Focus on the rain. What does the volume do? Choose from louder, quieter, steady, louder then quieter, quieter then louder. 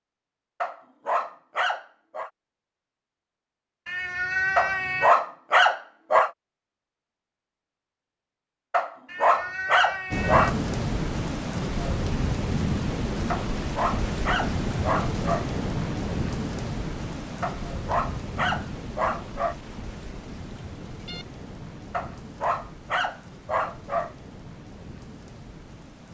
quieter.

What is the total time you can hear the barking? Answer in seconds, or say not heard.
12 s.